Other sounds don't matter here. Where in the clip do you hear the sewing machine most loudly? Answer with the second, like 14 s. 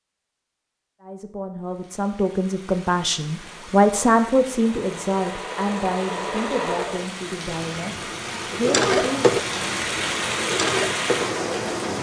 9 s.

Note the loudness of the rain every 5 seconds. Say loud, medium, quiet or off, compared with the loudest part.
quiet, medium, loud.